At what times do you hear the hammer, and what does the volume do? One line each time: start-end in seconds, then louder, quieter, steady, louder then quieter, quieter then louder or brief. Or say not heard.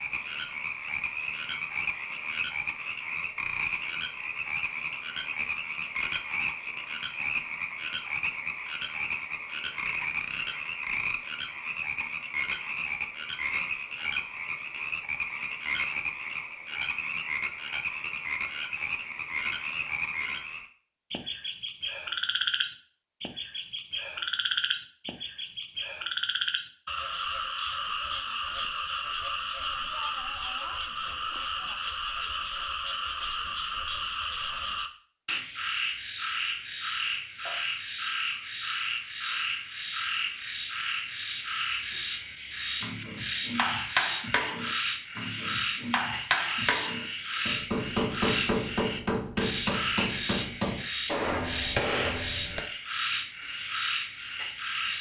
42.8-52.6 steady.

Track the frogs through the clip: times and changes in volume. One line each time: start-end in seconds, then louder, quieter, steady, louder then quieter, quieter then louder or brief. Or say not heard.
0.0-54.9 steady.